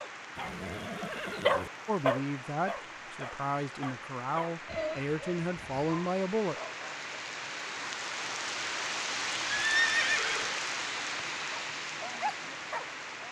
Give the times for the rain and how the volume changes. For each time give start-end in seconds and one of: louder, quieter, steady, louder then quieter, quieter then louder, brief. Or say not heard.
0.0-13.2 louder.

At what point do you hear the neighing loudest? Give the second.
10 s.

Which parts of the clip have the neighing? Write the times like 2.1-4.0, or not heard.
0.3-1.7, 4.7-5.8, 9.4-10.6.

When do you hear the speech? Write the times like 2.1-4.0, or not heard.
1.9-6.5.